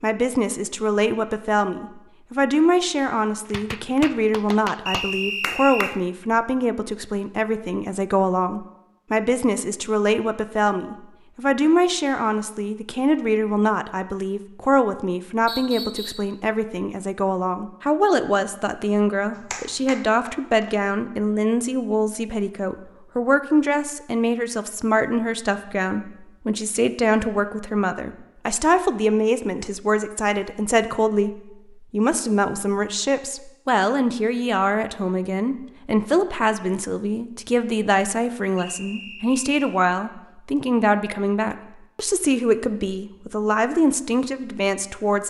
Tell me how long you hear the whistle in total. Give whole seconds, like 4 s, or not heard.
3 s.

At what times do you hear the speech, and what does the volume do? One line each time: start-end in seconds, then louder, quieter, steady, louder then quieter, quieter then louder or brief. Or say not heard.
0.0-45.2 steady.